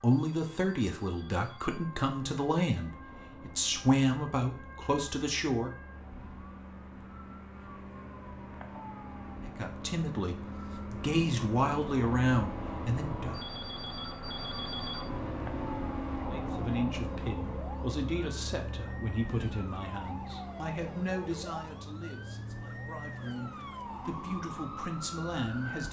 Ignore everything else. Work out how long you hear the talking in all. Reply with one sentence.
You can hear the talking for 19 seconds altogether.